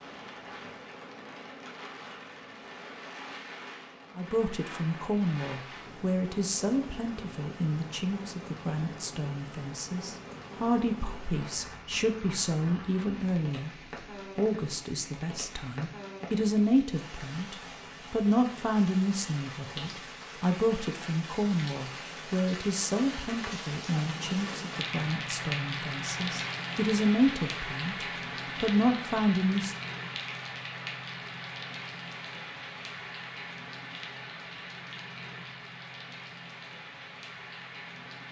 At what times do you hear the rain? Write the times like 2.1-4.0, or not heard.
0.0-38.2.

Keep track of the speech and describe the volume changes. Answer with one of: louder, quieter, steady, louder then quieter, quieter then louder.
steady.